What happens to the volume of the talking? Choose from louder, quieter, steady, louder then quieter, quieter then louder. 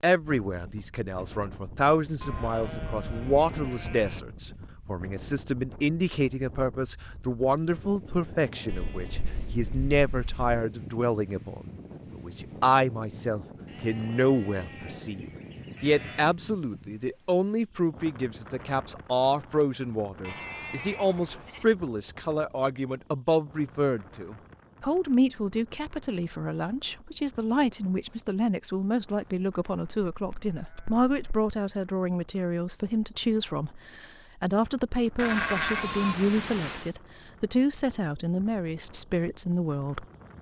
steady.